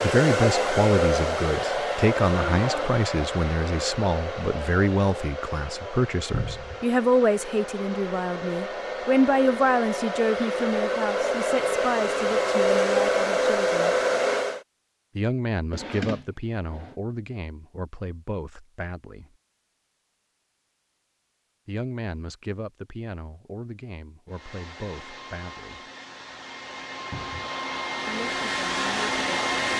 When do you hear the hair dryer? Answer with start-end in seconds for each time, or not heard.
0.0-14.6, 24.2-29.7.